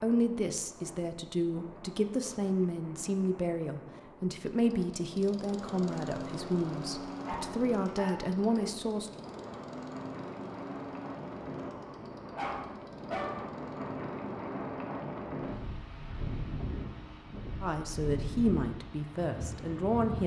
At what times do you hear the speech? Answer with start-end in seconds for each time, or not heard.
0.0-9.1, 17.6-20.2.